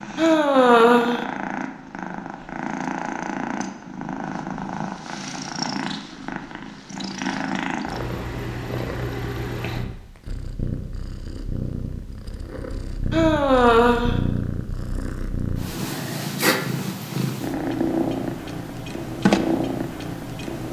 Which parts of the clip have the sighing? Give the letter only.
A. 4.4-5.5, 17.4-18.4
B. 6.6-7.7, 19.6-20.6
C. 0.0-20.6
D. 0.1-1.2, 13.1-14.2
D.